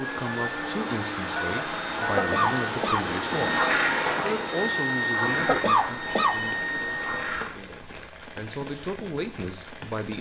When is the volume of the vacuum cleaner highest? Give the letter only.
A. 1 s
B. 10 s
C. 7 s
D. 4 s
D.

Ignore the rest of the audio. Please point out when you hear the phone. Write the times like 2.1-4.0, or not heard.
1.4-2.7, 6.0-6.8.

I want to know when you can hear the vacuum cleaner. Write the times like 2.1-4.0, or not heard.
0.0-7.5.